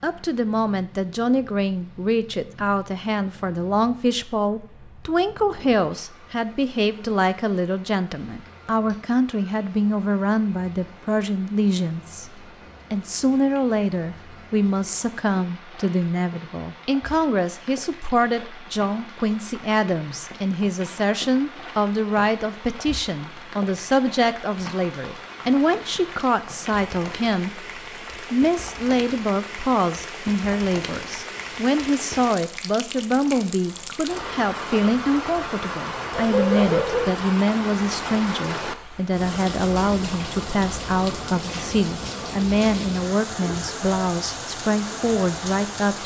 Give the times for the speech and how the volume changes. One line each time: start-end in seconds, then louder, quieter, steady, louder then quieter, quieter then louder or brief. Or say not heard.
0.0-46.0 steady.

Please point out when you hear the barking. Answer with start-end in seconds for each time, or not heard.
36.1-37.2.